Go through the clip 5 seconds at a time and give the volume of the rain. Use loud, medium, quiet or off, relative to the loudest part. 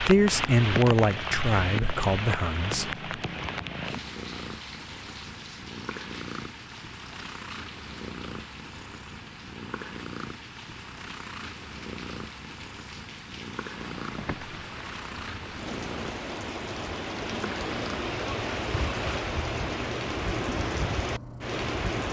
loud, quiet, quiet, loud, loud.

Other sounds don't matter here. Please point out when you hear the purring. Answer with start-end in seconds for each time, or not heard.
0.0-22.0.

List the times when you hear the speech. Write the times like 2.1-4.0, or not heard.
0.0-3.0.